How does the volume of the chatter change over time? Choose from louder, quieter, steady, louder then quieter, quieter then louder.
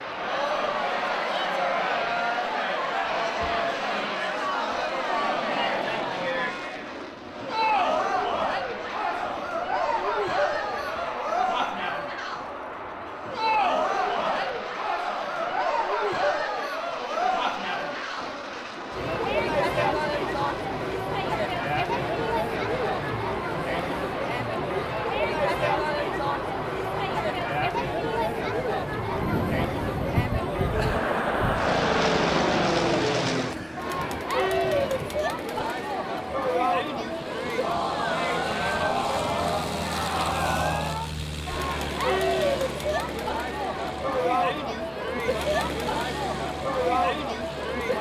steady.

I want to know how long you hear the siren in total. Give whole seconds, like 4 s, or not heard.
not heard.